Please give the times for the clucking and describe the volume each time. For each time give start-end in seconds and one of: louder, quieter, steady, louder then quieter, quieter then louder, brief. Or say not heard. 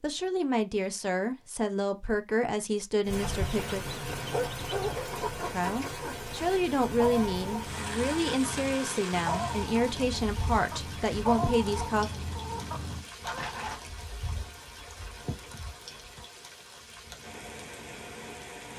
3.1-13.8 steady.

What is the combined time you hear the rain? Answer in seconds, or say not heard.
16 s.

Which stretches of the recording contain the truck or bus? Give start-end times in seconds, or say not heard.
not heard.